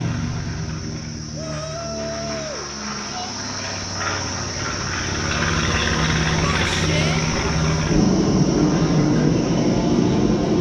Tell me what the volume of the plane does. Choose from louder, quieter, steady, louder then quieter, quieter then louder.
louder.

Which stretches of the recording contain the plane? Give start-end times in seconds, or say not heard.
0.0-10.5.